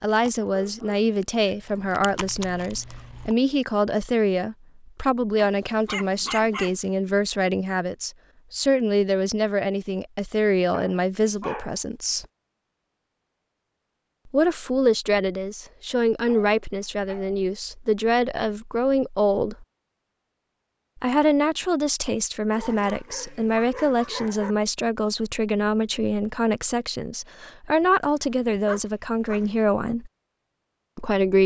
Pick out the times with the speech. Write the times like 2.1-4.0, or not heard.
0.0-12.2, 14.3-19.6, 21.0-30.1, 30.9-31.4.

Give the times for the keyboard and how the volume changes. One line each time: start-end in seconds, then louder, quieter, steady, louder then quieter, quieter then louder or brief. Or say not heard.
not heard.